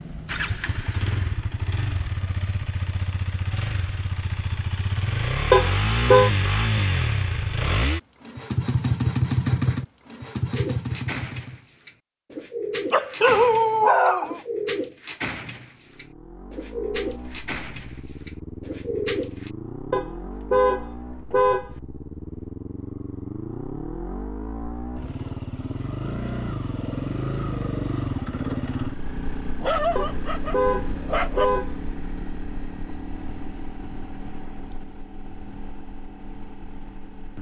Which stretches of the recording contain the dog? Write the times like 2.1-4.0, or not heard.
12.9-14.4, 29.6-31.6.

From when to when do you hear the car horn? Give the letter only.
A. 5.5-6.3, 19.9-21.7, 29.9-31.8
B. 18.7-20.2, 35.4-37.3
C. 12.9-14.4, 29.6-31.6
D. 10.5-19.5
A.